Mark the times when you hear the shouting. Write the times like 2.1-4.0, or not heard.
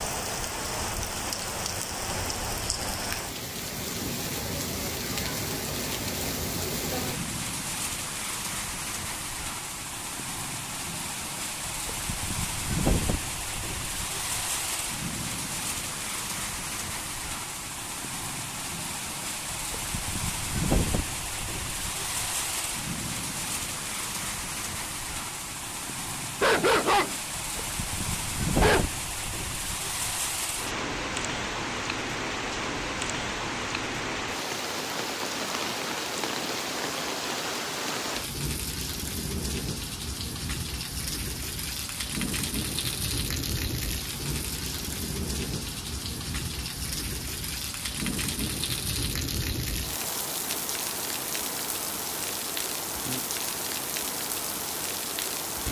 not heard.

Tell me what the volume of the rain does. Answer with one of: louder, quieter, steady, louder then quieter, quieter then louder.
steady.